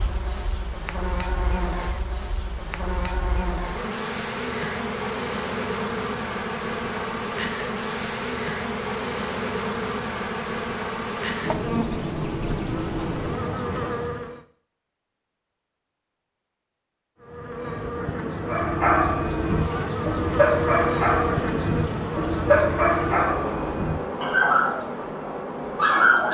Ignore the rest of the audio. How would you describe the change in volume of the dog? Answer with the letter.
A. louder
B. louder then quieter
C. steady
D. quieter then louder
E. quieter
C.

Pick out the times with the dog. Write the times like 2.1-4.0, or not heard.
18.4-26.3.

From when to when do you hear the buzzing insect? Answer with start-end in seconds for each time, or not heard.
0.0-14.4, 17.2-26.3.